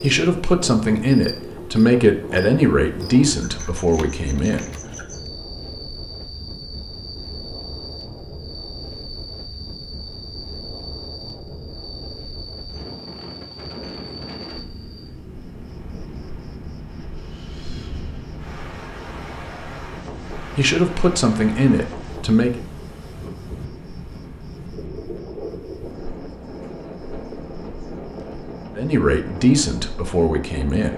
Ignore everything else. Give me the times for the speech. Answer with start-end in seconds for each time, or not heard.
0.0-4.7, 20.6-22.6, 28.8-30.9.